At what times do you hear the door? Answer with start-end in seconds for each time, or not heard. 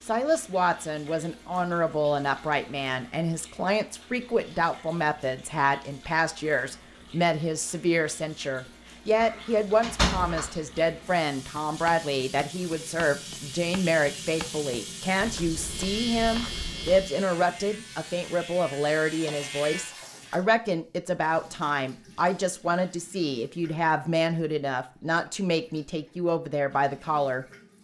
9.2-10.6.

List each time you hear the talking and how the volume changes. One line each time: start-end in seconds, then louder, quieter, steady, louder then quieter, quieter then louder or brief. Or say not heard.
0.1-27.4 steady.